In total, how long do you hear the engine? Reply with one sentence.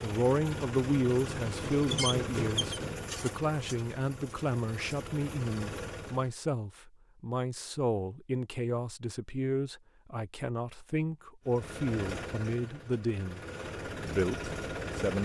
The engine can be heard for 10 seconds in total.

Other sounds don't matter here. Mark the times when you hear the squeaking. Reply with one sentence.
The squeaking can be heard from 1.9 to 2.8 s.